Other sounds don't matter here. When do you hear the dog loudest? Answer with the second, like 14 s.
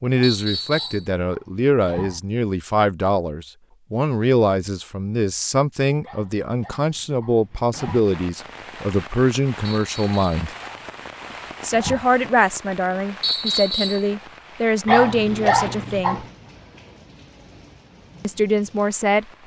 15 s.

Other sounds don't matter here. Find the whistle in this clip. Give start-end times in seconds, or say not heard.
0.2-1.1, 9.6-10.4, 13.2-14.1.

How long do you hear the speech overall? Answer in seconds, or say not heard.
16 s.